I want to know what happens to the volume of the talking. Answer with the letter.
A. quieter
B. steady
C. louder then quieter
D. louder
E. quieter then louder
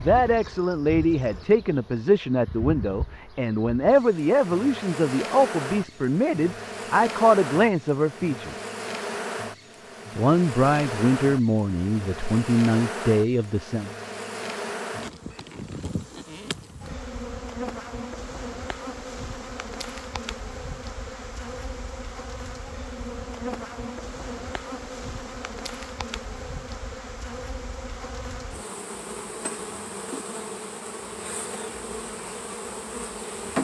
B.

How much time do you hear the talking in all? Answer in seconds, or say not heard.
12 s.